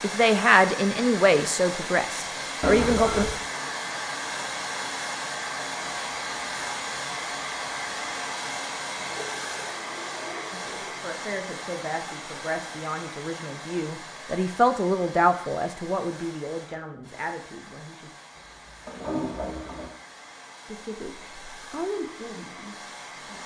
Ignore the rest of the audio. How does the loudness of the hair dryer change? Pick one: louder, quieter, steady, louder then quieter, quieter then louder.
quieter.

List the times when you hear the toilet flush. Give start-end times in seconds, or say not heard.
2.6-3.4, 9.0-11.1, 18.4-19.9.